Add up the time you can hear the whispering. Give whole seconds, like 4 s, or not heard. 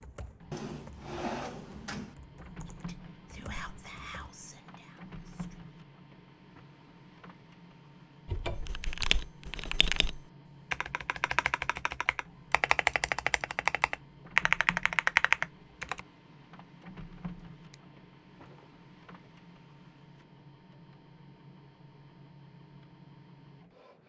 3 s.